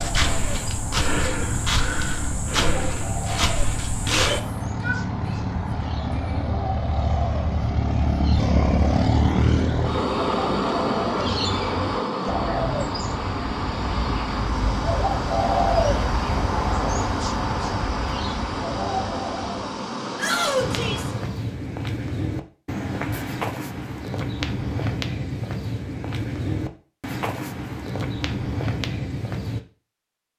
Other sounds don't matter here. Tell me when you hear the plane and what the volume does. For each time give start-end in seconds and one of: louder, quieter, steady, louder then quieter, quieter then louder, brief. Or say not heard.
0.0-21.4 louder then quieter.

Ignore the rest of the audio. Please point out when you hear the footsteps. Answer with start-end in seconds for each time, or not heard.
0.0-4.4, 20.6-29.6.